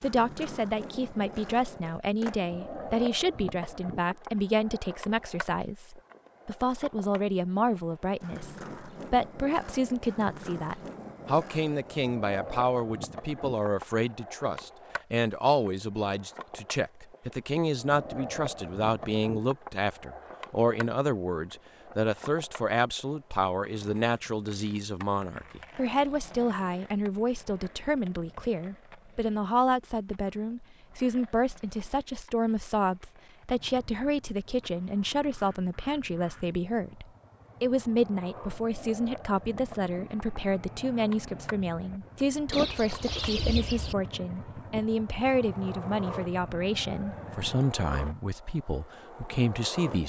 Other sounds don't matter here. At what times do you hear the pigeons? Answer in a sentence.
The pigeons can be heard from 42.5 to 44.0 s.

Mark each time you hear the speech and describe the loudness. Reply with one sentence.
The speech can be heard from 0.0 to 50.0 s, at a steady volume.